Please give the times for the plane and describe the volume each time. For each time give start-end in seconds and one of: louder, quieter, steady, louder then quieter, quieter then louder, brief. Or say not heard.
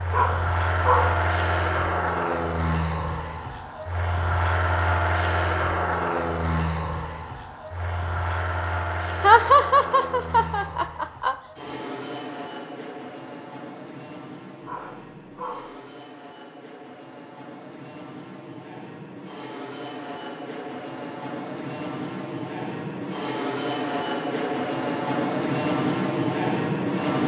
0.0-27.2 quieter then louder.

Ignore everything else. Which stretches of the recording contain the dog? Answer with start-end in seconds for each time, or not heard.
0.1-1.2, 14.6-15.8.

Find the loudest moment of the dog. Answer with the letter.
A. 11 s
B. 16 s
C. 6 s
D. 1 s
D.